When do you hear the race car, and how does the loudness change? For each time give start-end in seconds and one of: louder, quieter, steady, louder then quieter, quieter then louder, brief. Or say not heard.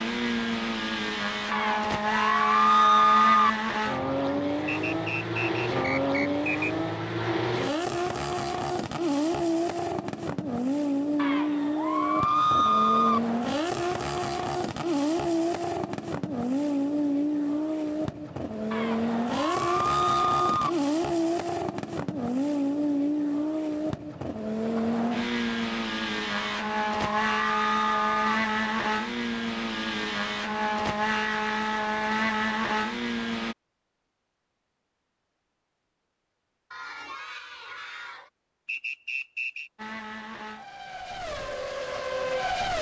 0.0-33.5 steady
39.8-42.7 brief.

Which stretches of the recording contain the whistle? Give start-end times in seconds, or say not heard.
4.7-6.8, 38.6-39.7.